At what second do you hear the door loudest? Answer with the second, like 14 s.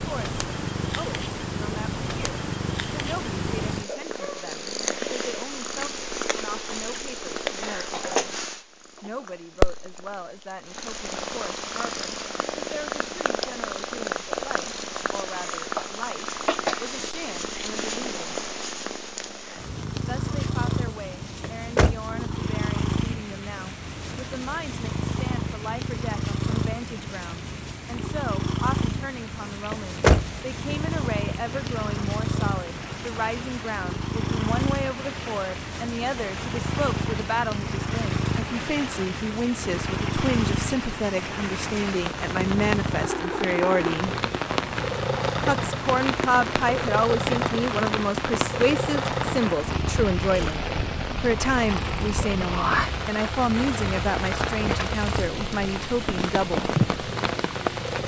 30 s.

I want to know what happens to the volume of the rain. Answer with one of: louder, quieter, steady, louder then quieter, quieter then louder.
louder.